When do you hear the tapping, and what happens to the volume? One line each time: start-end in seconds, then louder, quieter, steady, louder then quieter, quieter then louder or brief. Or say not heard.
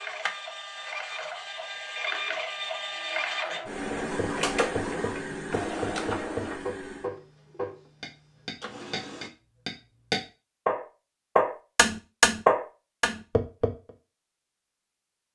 3.9-13.9 louder.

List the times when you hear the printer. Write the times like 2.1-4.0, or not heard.
0.0-9.3.